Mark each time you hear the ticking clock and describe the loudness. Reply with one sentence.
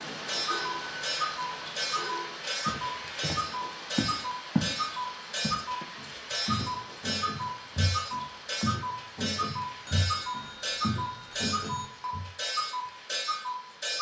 You can hear the ticking clock from 0.1 to 13.9 s, at a steady volume.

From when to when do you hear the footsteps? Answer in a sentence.
You can hear the footsteps from 2.6 to 4.8 s and from 5.4 to 12.2 s.